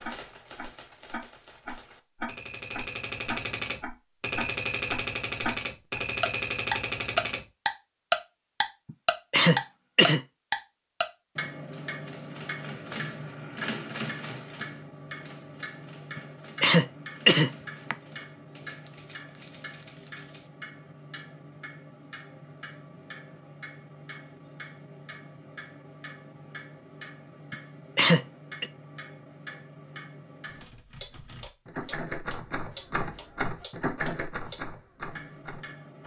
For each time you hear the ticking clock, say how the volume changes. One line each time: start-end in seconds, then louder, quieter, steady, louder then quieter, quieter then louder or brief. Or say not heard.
0.0-36.0 quieter.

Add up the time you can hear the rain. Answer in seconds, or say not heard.
not heard.